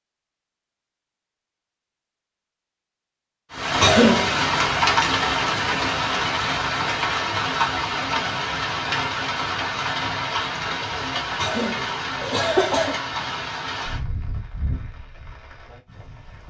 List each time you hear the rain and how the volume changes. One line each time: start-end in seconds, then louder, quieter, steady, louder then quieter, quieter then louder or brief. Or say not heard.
3.5-16.4 quieter.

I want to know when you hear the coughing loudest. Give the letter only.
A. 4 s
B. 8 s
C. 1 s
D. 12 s
A.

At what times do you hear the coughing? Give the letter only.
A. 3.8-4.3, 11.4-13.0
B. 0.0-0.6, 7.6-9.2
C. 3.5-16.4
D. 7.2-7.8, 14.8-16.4
A.